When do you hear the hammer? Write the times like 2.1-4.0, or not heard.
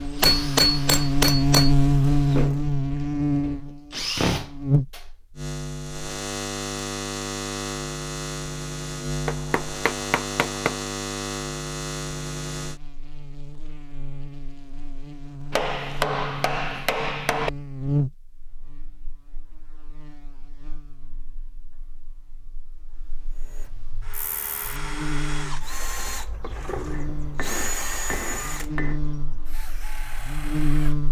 0.2-1.7, 9.2-10.8, 15.5-17.5, 26.9-29.0.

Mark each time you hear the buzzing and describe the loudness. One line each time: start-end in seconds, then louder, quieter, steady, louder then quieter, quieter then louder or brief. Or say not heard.
0.0-31.0 quieter then louder.